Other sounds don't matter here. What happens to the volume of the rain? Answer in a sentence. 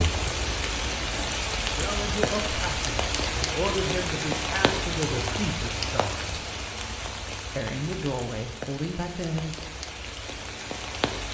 The volume of the rain goes down.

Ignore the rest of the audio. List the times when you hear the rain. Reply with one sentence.
The rain can be heard from 0.0 to 11.2 s.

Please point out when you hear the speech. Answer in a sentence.
The speech can be heard from 1.6 to 6.4 s and from 7.5 to 9.7 s.